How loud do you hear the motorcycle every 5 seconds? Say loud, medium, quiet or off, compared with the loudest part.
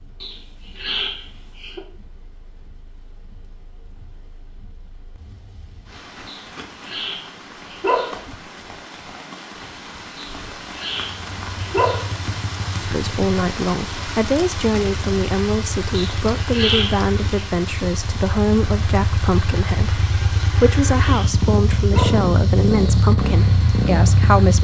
off, off, quiet, medium, loud.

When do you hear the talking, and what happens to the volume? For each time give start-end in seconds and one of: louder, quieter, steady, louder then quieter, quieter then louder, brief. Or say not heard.
12.8-24.5 steady.